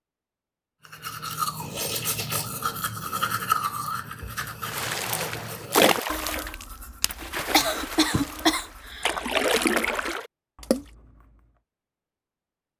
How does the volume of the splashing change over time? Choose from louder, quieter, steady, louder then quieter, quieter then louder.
quieter then louder.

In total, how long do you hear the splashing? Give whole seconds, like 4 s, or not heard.
6 s.